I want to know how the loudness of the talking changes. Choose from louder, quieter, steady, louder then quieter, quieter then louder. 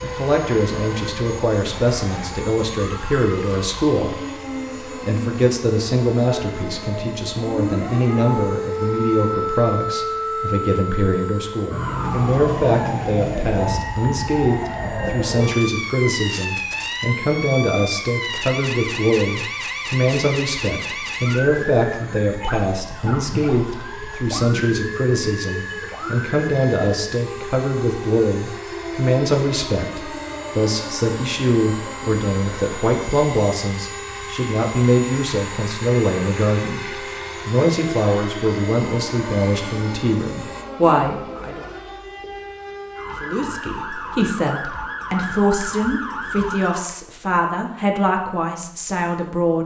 steady.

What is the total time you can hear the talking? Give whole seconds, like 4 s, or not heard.
48 s.